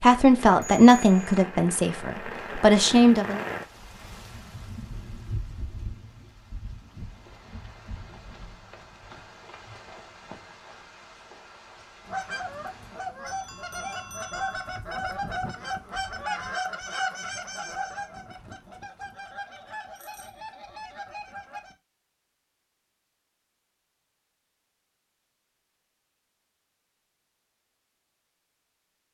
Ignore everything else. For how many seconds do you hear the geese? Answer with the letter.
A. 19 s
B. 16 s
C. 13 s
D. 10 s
D.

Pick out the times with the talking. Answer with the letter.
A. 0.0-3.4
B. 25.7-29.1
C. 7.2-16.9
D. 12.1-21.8
A.